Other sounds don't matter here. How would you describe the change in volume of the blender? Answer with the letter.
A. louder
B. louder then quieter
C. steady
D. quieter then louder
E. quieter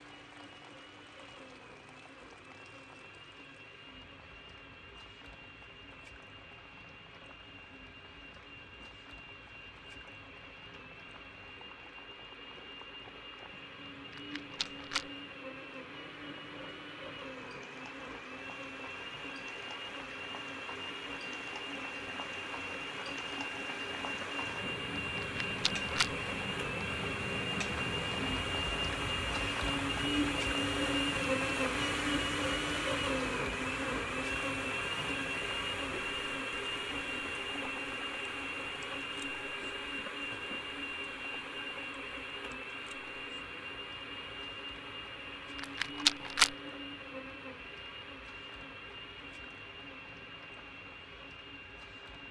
B.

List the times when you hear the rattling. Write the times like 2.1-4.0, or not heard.
14.1-15.1, 25.1-26.1, 45.5-46.5.